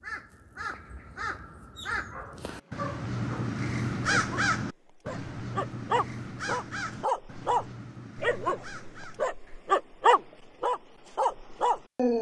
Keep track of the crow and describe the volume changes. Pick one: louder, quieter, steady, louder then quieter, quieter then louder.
louder then quieter.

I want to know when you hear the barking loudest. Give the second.
10 s.